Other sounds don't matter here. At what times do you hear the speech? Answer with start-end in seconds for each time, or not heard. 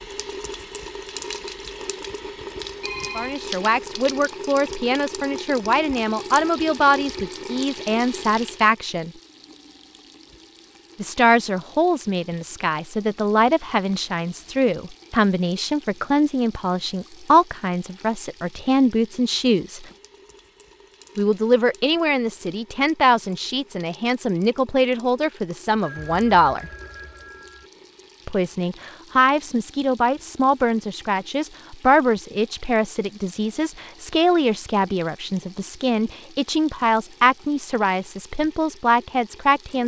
3.1-9.1, 10.9-19.9, 21.1-26.6, 28.2-39.8.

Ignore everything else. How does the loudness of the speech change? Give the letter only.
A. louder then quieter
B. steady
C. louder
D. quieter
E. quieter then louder
B.